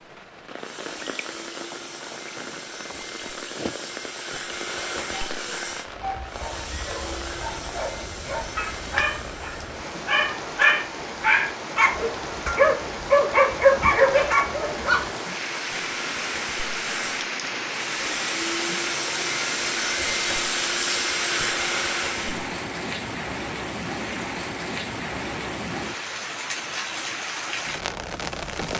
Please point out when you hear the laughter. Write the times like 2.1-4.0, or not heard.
not heard.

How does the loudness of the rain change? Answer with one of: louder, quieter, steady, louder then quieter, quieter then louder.
louder.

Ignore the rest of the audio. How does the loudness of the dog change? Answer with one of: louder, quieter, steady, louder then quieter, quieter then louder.
louder.